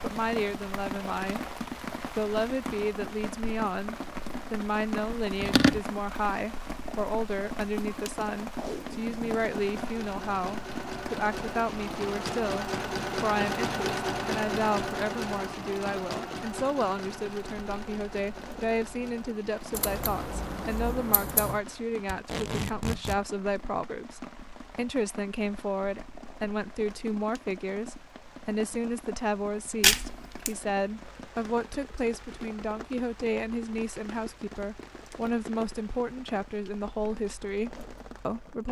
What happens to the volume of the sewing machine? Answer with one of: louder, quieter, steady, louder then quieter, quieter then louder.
louder then quieter.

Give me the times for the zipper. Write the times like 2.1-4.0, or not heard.
not heard.